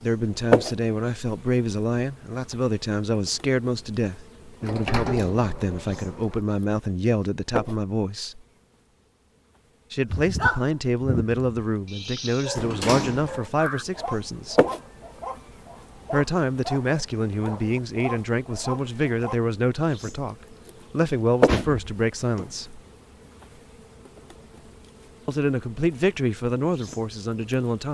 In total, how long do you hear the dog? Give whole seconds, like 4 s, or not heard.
9 s.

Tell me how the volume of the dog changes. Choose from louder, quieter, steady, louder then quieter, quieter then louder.
quieter.